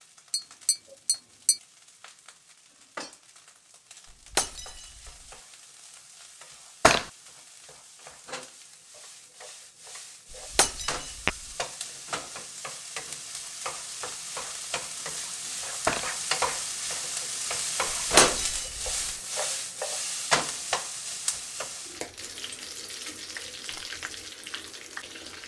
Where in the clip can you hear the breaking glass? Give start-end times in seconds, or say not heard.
4.1-5.1, 10.3-11.3, 18.1-18.9.